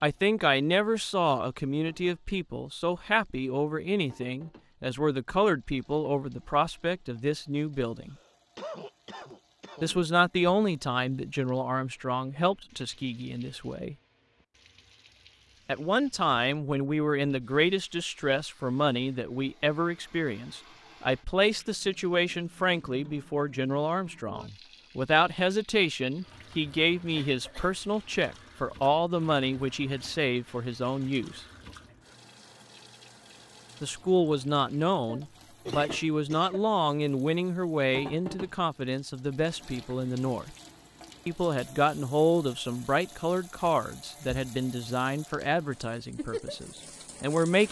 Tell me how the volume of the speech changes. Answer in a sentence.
The volume of the speech stays about the same.